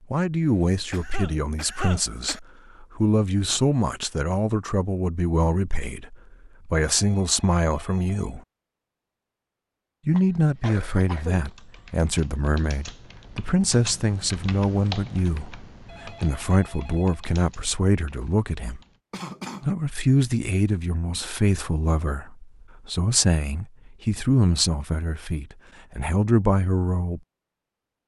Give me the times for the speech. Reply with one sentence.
The speech can be heard from 0.1 to 8.4 s, from 10.1 to 18.8 s and from 19.6 to 27.2 s.